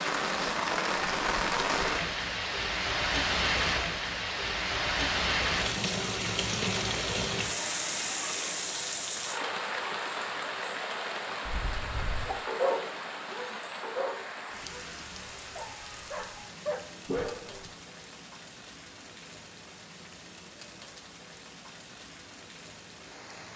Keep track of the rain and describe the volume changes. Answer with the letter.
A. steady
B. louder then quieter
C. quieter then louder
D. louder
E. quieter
E.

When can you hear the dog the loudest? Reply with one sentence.
The loudest moment of the dog is at 13 seconds.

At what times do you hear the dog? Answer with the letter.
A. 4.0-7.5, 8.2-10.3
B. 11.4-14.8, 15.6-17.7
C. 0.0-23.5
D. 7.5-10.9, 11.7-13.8
B.